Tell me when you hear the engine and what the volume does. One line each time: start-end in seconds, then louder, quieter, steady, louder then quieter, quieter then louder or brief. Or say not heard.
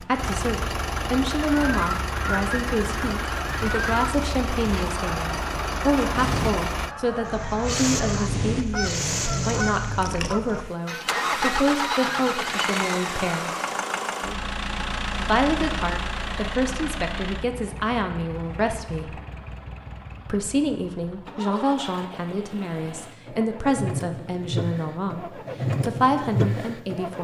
0.0-27.2 quieter then louder.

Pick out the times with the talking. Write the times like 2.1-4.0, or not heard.
0.0-13.6, 15.2-19.2, 20.2-27.2.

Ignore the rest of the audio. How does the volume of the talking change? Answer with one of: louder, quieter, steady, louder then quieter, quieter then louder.
steady.